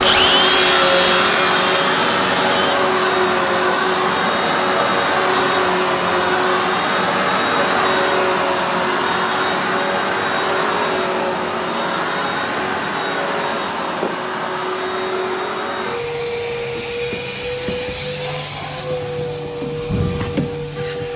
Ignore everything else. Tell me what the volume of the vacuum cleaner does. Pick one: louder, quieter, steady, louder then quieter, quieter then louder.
quieter.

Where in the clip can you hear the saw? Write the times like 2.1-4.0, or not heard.
0.0-2.7.